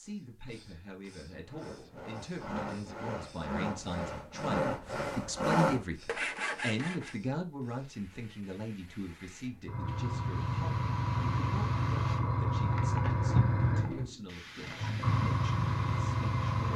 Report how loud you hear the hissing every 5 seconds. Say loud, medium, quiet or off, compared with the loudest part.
quiet, quiet, loud, loud.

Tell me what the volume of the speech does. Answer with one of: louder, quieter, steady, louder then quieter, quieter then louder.
louder then quieter.